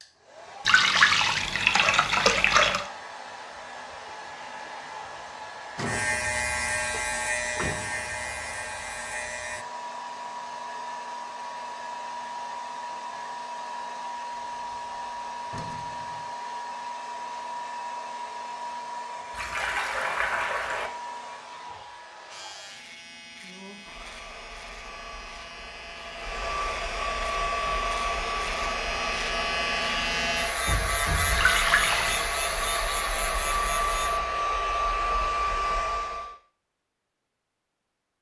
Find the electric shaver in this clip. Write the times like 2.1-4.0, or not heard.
5.8-9.7, 22.3-34.2.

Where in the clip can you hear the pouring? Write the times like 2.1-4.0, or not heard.
0.7-2.9, 19.3-20.9, 31.4-32.2.